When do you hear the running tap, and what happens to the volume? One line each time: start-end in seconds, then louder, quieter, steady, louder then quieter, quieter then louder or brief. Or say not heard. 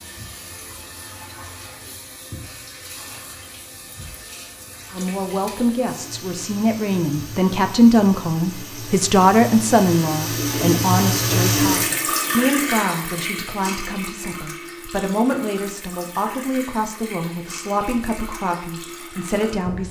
0.0-19.8 louder then quieter.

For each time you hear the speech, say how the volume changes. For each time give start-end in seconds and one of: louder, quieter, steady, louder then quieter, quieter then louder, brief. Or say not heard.
4.9-19.8 quieter.